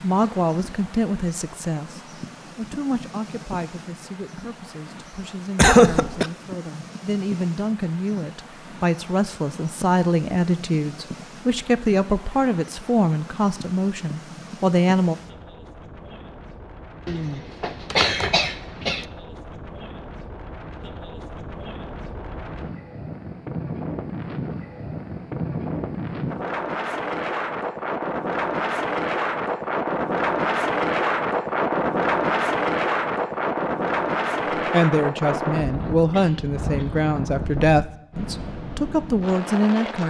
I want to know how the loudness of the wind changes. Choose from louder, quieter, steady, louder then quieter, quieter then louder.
louder.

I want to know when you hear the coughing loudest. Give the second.
6 s.